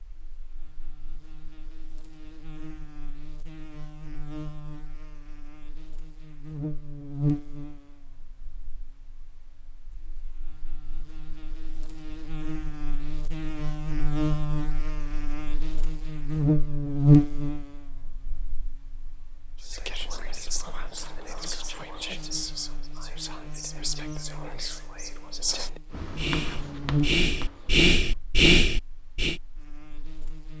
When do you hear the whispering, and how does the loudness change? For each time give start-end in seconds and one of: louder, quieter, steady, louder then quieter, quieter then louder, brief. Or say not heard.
19.6-29.4 louder.